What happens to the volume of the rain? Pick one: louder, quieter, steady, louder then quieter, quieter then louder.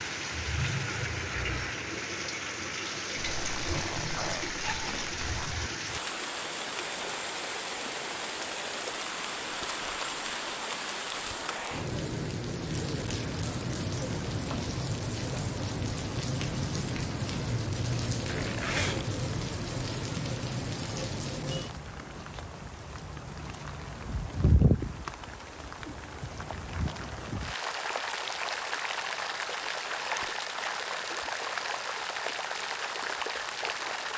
steady.